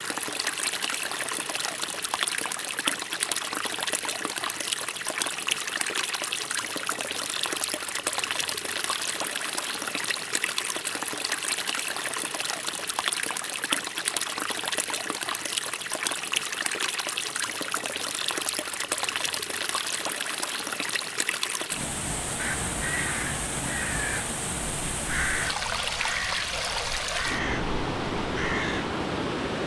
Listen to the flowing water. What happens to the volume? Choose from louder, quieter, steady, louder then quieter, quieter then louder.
steady.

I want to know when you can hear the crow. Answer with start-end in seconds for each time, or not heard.
22.4-28.9.